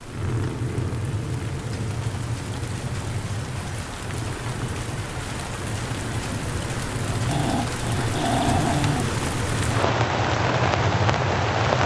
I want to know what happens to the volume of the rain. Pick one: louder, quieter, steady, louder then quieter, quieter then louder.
louder.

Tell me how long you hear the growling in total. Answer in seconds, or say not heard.
2 s.